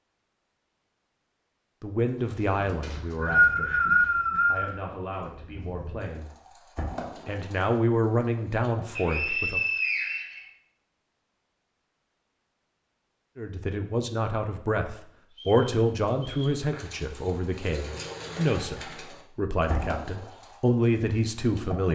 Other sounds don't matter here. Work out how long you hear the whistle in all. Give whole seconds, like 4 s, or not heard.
5 s.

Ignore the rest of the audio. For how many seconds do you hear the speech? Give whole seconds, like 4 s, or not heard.
15 s.